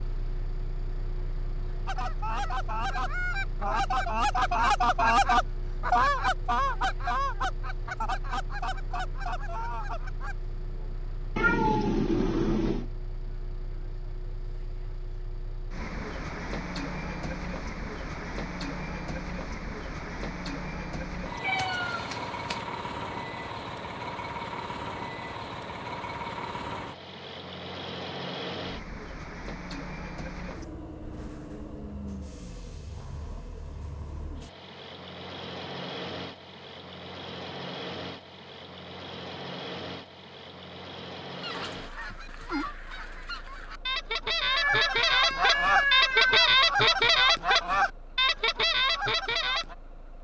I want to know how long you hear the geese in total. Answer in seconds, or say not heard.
17 s.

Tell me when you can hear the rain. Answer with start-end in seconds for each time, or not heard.
not heard.